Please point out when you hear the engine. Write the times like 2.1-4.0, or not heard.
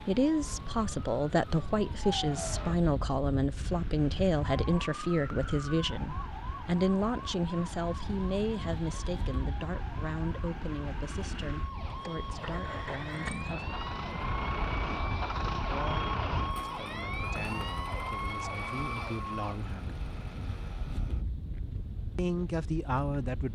3.5-21.2.